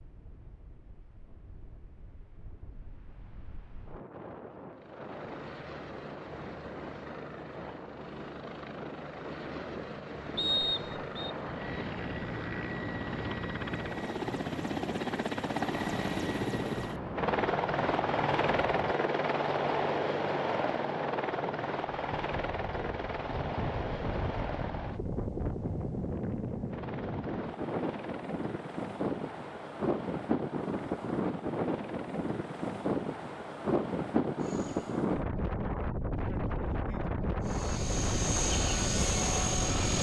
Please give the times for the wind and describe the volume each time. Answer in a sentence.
The wind can be heard from 0.0 to 39.9 s, getting louder.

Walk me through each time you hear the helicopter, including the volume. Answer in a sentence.
You can hear the helicopter from 4.7 to 35.0 s, getting louder then quieter; and briefly from 37.5 to 39.9 s.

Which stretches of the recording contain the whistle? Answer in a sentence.
The whistle can be heard from 10.3 to 11.3 s.